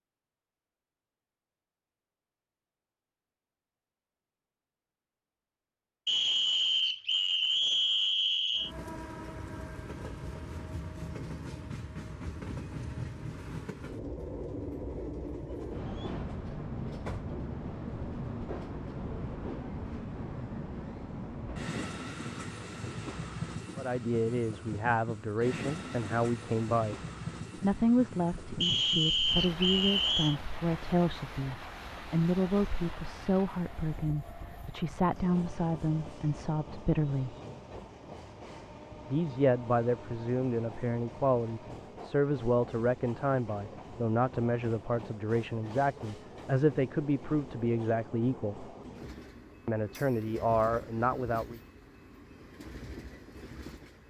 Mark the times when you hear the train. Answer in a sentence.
You can hear the train from 8.6 to 54.0 s.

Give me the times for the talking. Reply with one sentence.
You can hear the talking from 23.8 to 26.9 s, from 27.6 to 37.4 s, from 39.0 to 48.7 s and from 49.6 to 51.6 s.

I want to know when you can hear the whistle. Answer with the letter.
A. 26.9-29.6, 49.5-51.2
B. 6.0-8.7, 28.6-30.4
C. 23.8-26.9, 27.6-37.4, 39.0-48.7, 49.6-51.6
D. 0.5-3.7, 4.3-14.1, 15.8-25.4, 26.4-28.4
B.